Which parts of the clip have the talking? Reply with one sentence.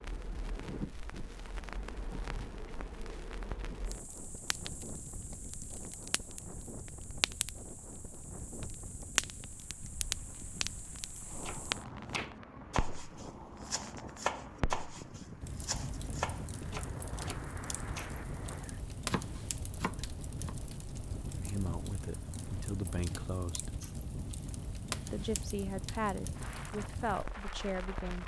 The talking can be heard from 21.4 to 23.8 s and from 25.1 to 28.2 s.